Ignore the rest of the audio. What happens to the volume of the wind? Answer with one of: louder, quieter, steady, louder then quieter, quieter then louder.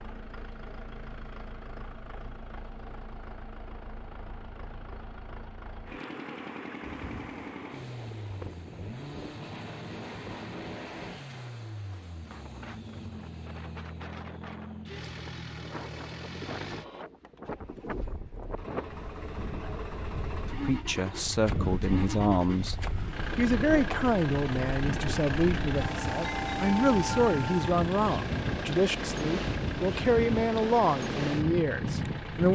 louder.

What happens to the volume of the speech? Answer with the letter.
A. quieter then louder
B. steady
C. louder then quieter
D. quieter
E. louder
B.